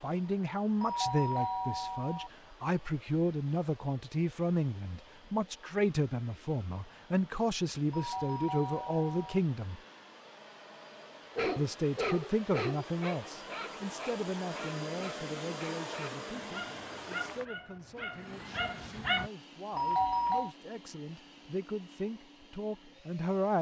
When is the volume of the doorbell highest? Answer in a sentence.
The volume of the doorbell peaks at 20 seconds.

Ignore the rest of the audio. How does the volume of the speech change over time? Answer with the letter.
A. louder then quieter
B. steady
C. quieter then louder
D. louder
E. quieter
C.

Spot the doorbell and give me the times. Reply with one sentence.
The doorbell can be heard from 0.8 to 2.3 s, from 7.9 to 9.4 s and from 19.8 to 20.5 s.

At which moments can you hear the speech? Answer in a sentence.
You can hear the speech from 0.0 to 9.8 s and from 11.6 to 23.5 s.